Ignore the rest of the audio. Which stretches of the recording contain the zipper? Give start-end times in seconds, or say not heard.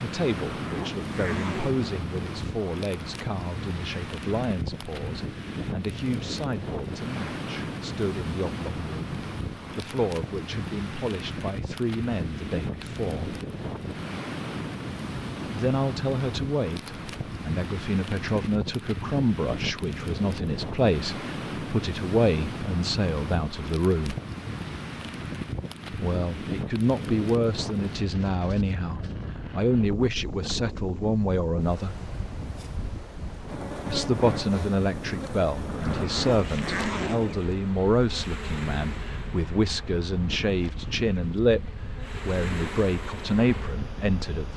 0.5-1.9, 35.6-37.4.